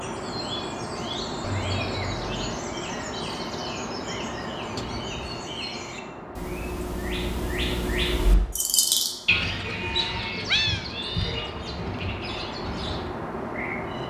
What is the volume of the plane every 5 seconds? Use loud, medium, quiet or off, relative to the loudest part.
loud, medium, loud.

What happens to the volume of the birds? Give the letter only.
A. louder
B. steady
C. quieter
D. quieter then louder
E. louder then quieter
E.